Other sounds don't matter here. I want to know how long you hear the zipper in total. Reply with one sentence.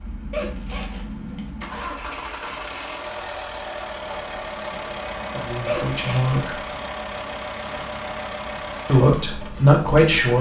The zipper can be heard for 2 seconds in total.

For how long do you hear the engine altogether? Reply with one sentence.
You can hear the engine for 10 seconds altogether.